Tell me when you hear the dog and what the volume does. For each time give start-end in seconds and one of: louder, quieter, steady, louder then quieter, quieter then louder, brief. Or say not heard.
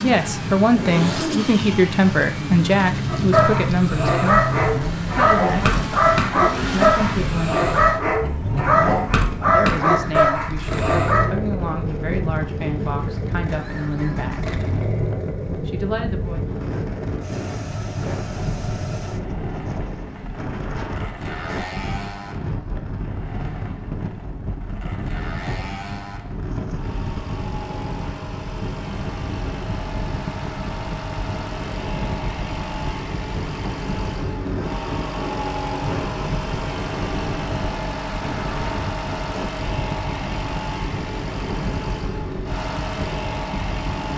3.0-11.3 steady.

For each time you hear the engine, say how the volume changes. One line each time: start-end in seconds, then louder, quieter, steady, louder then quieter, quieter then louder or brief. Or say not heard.
0.0-44.1 quieter then louder.